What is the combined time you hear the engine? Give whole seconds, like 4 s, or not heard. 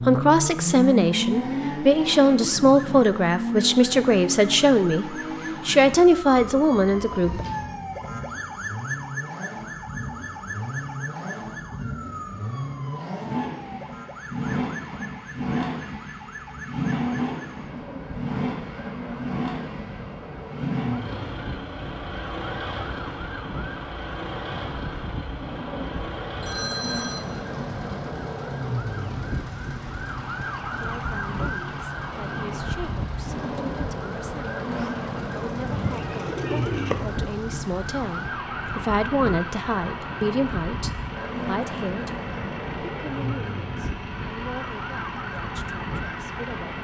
47 s.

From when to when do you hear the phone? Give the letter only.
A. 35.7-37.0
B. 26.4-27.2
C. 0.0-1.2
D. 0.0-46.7
B.